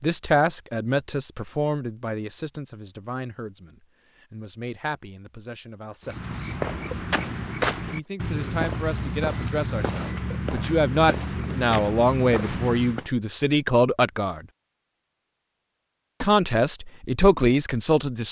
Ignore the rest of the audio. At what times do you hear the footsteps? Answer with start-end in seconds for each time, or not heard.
6.0-13.1.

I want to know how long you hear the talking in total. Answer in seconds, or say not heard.
15 s.